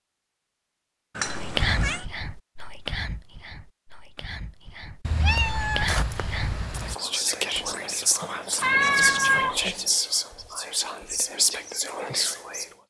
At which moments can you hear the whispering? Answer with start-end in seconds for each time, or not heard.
1.2-12.7.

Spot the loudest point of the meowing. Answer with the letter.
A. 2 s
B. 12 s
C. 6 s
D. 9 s
D.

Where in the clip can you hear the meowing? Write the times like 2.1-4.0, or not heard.
1.1-2.0, 5.0-7.0, 8.6-9.6.